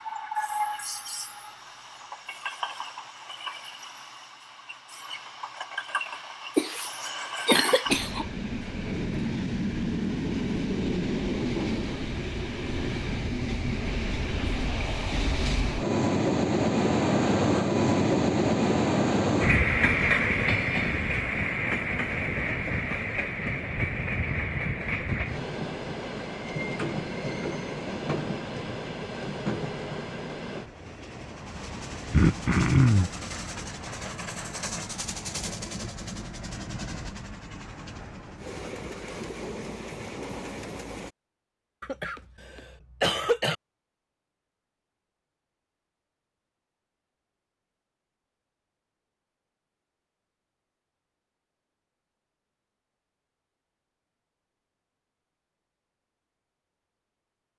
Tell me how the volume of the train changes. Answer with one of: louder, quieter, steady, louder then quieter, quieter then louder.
louder then quieter.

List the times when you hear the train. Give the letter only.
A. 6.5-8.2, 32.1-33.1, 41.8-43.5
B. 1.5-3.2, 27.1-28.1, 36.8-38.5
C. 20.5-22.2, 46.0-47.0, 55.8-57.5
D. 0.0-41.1
D.